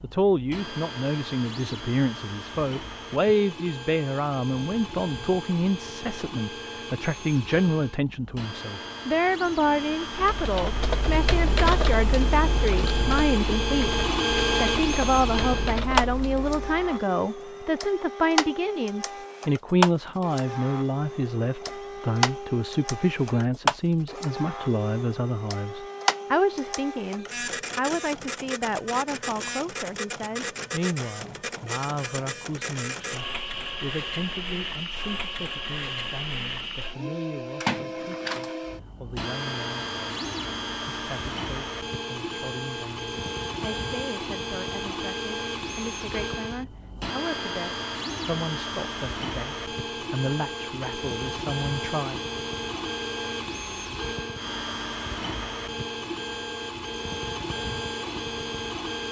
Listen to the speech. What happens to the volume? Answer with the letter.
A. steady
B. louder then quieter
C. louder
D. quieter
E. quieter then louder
D.